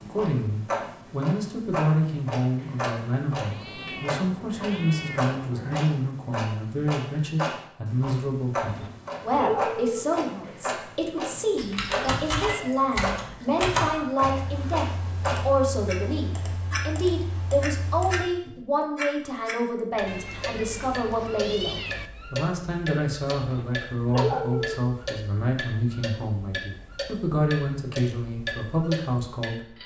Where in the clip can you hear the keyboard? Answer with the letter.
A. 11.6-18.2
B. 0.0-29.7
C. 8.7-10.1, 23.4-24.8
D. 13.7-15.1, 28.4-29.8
A.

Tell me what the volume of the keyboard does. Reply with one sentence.
The volume of the keyboard goes down.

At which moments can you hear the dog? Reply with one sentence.
The dog can be heard from 8.7 to 10.1 s and from 23.4 to 24.8 s.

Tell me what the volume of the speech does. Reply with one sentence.
The loudness of the speech stays about the same.